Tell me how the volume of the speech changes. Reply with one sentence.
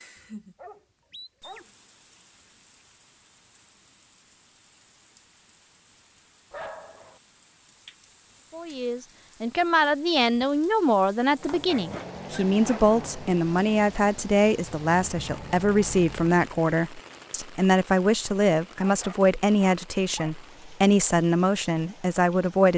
The loudness of the speech stays about the same.